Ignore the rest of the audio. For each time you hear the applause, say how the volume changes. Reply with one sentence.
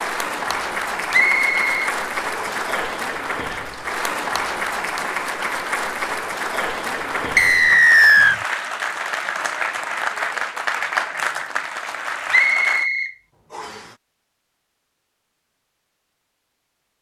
You can hear the applause from 0.0 to 12.9 s, at a steady volume.